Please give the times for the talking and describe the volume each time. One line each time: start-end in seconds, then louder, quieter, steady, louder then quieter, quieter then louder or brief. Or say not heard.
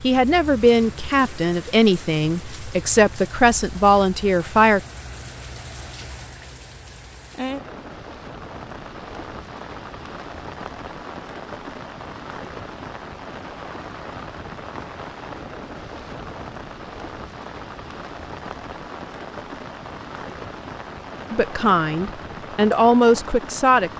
0.0-4.8 quieter then louder
21.3-23.9 brief.